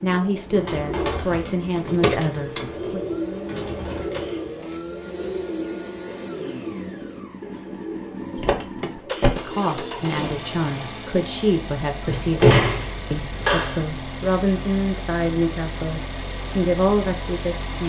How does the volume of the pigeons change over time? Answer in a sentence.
The volume of the pigeons goes down.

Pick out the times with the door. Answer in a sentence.
You can hear the door from 1.9 to 2.8 s, from 8.3 to 9.3 s and from 12.1 to 13.8 s.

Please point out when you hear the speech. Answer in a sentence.
You can hear the speech from 0.0 to 3.0 s and from 9.2 to 17.8 s.